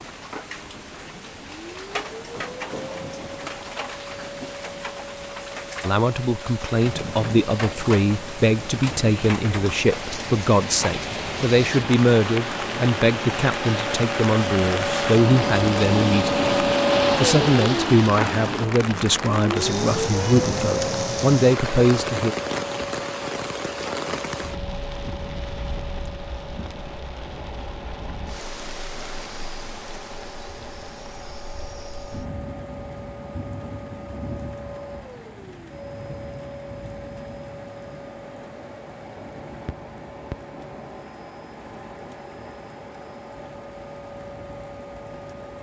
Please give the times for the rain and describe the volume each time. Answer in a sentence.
The rain can be heard from 0.0 to 45.5 s, getting louder then quieter.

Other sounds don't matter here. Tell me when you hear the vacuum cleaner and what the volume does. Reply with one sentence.
You can hear the vacuum cleaner from 0.0 to 45.5 s, getting louder then quieter.